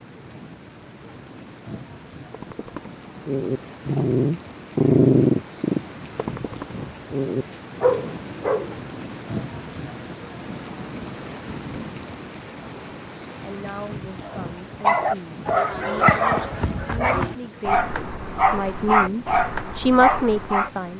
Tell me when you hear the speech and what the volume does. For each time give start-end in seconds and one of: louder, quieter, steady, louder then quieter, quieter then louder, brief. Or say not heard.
13.4-20.9 louder.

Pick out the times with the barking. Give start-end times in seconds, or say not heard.
2.3-8.8, 14.2-20.7.